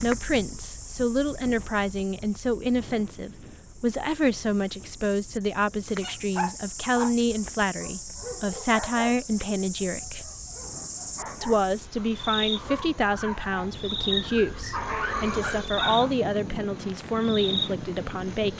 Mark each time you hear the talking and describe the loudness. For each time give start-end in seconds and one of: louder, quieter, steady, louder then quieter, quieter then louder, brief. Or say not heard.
0.0-10.3 steady
11.4-18.5 steady.